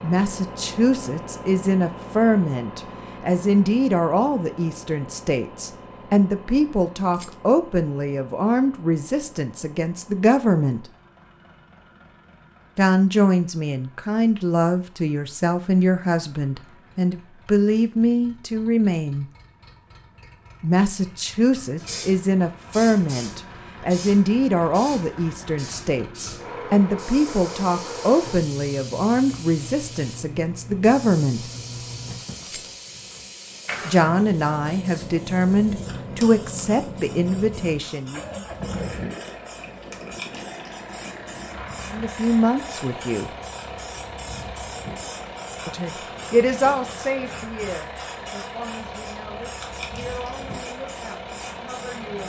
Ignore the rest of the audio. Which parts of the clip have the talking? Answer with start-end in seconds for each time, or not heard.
0.0-10.8, 12.8-19.2, 20.6-31.4, 33.9-38.2, 41.9-43.3, 45.6-52.2.